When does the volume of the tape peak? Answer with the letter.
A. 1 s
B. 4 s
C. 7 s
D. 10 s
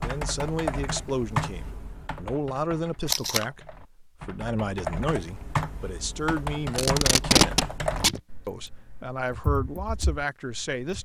C.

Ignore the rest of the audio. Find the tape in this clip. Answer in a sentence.
You can hear the tape from 3.0 to 3.5 s and from 6.8 to 8.2 s.